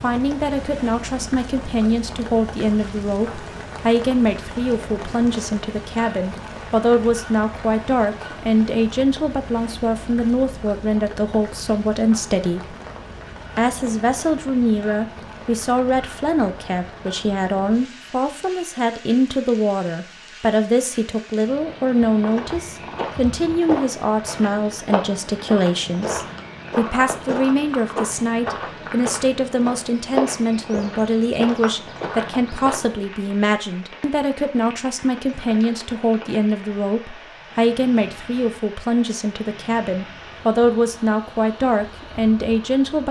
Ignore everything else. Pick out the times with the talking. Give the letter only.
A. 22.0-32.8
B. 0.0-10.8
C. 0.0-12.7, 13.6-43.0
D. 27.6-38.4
C.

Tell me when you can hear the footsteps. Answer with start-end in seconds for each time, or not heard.
22.0-32.8.